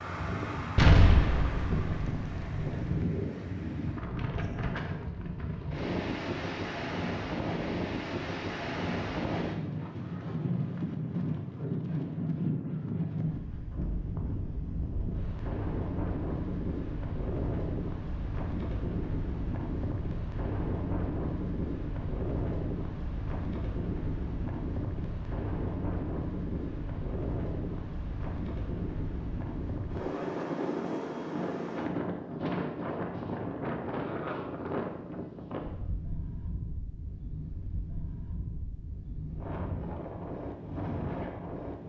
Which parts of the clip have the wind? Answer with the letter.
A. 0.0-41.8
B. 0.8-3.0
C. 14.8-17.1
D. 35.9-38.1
A.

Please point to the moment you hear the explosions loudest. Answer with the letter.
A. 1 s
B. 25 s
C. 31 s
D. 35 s
A.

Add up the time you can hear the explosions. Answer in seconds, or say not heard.
2 s.